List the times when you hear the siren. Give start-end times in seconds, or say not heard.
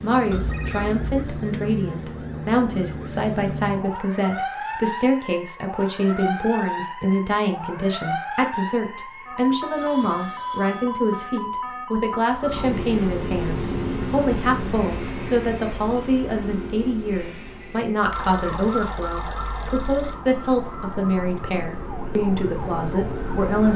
0.0-12.7, 18.0-23.7.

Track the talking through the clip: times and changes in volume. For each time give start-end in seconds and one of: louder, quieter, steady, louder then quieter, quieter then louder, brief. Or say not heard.
0.0-23.7 steady.